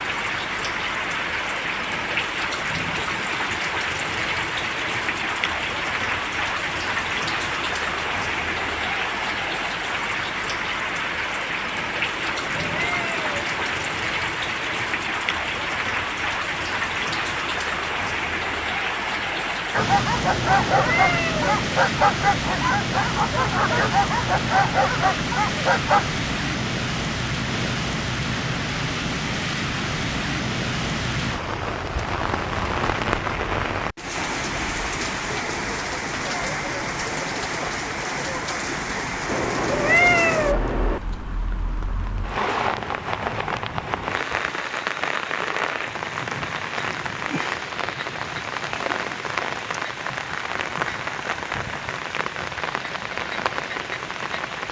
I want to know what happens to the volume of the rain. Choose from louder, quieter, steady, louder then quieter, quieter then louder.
steady.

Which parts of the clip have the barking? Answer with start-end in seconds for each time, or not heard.
19.7-26.1.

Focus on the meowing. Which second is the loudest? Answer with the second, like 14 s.
40 s.